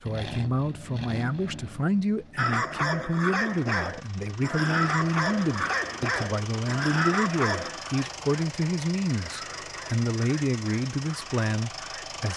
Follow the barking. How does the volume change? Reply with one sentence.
The loudness of the barking goes down.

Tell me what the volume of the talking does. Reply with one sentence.
The loudness of the talking stays about the same.